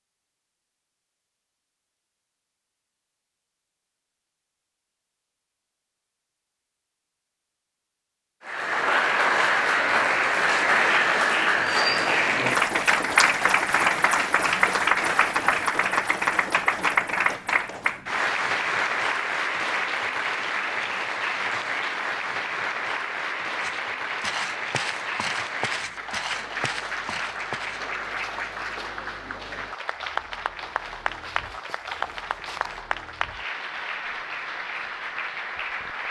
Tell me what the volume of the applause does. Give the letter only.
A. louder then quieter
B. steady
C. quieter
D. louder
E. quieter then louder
C.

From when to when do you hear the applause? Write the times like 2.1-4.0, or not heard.
8.4-36.0.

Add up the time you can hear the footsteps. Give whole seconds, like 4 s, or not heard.
9 s.